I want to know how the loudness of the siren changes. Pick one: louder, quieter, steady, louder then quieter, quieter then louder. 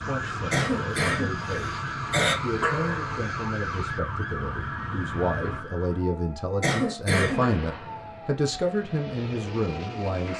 quieter.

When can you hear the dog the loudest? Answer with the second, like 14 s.
3 s.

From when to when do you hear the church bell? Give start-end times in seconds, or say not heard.
not heard.